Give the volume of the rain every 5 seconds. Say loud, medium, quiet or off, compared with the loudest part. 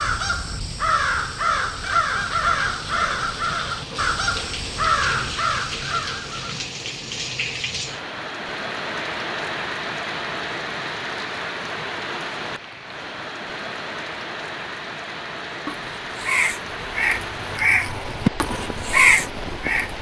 medium, loud, loud, loud.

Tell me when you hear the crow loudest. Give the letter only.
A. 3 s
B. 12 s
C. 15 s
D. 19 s
D.